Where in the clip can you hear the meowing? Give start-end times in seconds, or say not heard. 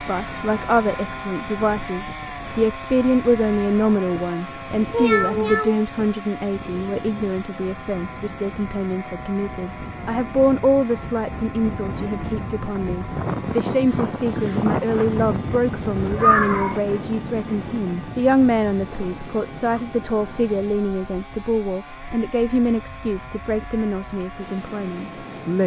4.9-5.8, 15.9-16.8.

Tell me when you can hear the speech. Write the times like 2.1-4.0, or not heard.
0.0-25.6.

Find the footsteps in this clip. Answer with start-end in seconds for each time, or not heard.
not heard.